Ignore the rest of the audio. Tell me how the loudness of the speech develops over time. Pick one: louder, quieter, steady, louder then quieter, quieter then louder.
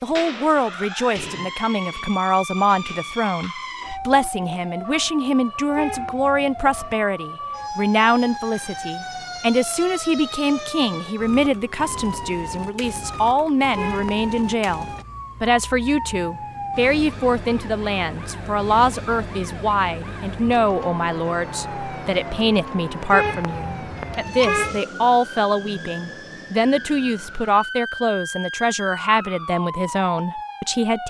steady.